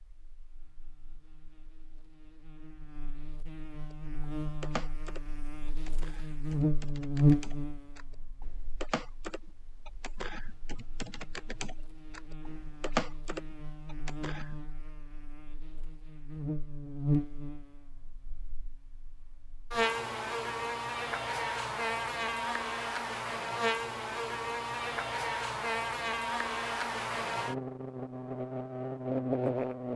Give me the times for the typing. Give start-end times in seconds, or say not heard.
3.9-14.6.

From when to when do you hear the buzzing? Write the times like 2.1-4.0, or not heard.
0.0-29.9.